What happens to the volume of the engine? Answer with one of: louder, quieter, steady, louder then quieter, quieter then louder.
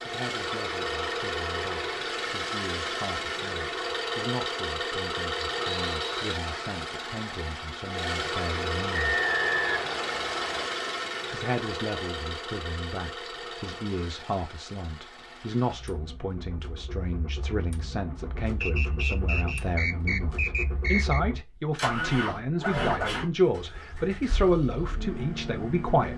quieter then louder.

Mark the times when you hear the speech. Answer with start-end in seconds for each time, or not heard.
0.1-9.2, 11.3-26.1.